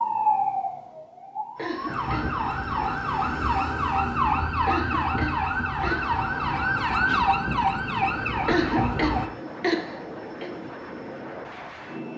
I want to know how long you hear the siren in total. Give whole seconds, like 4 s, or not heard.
9 s.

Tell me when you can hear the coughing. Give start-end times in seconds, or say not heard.
1.6-2.3, 4.7-6.2, 8.4-10.5.